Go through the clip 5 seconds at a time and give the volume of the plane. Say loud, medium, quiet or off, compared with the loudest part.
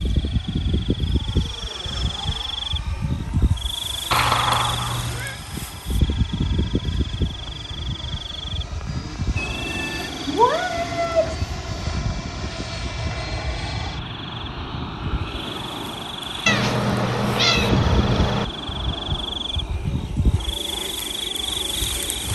medium, medium, loud, loud, medium.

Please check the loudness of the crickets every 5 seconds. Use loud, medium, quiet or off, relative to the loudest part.
loud, loud, medium, loud, loud.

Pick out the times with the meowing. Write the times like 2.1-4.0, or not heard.
4.1-5.4, 9.3-11.3, 16.4-18.4.